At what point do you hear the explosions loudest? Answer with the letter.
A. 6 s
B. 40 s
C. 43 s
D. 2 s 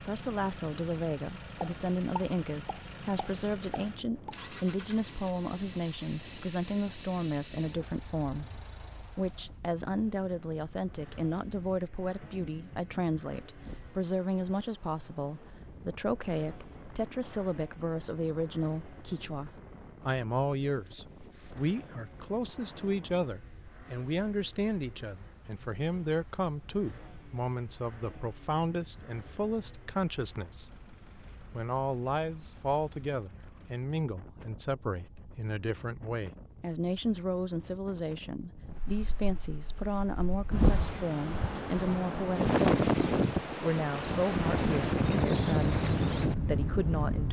D.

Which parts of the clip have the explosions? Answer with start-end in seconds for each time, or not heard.
1.6-4.4.